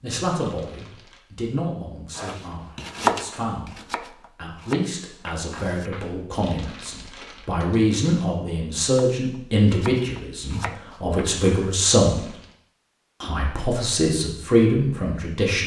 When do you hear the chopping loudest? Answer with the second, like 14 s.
3 s.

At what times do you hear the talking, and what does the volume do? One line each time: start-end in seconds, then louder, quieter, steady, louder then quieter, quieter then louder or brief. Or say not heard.
0.0-12.2 louder
13.2-15.6 brief.